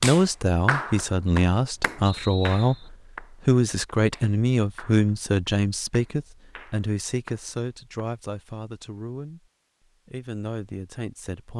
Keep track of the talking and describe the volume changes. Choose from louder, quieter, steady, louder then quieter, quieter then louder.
quieter.